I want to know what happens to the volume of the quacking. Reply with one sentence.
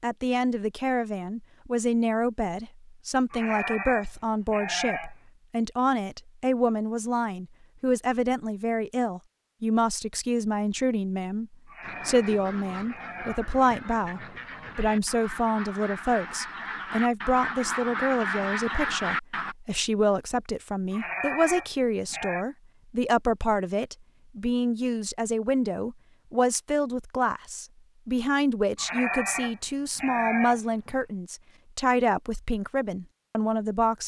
The volume of the quacking goes up.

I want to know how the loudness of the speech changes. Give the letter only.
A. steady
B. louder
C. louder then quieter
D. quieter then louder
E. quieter
A.